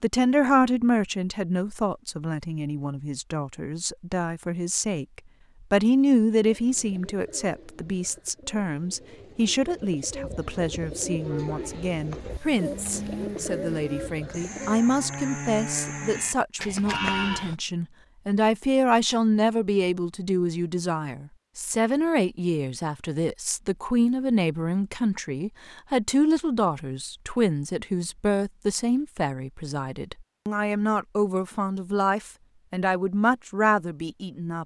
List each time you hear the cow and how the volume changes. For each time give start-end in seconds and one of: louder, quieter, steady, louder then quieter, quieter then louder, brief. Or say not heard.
11.2-17.6 louder.